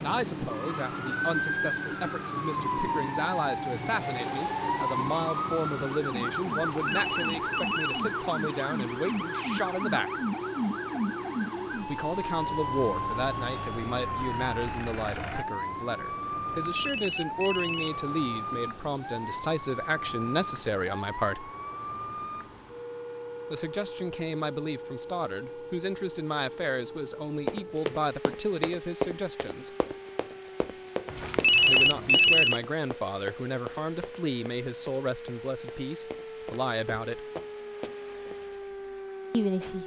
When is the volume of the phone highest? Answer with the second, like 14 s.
32 s.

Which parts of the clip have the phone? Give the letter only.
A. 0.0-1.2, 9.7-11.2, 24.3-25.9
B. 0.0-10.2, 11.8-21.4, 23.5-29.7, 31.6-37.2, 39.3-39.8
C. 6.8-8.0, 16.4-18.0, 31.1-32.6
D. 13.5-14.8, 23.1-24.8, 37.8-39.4
C.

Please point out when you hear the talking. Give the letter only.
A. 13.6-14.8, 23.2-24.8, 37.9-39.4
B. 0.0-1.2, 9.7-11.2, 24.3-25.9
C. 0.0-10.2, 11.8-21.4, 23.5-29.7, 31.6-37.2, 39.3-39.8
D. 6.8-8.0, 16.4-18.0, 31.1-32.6
C.